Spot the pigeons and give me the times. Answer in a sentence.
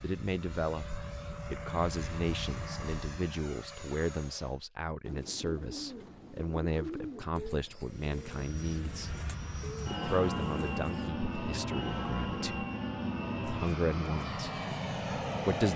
You can hear the pigeons from 5.0 to 11.1 s.